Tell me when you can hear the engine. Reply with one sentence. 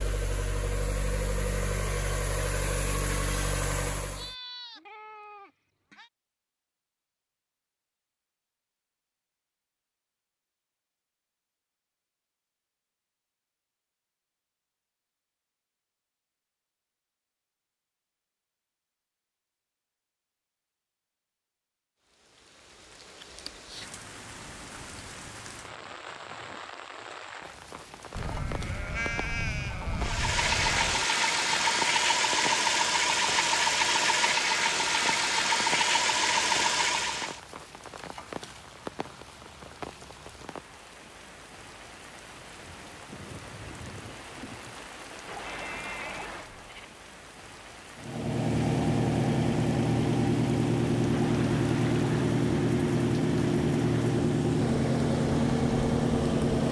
You can hear the engine from 0.0 to 4.3 s, from 29.9 to 37.4 s and from 48.0 to 56.6 s.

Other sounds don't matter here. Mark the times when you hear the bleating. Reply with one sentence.
You can hear the bleating from 4.1 to 6.1 s, from 28.1 to 31.1 s and from 45.5 to 46.9 s.